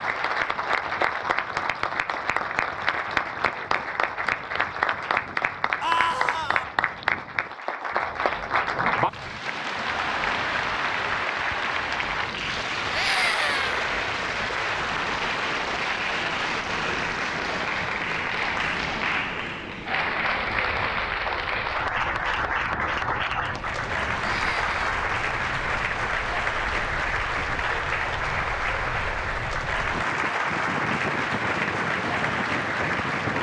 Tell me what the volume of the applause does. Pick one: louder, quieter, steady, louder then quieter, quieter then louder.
steady.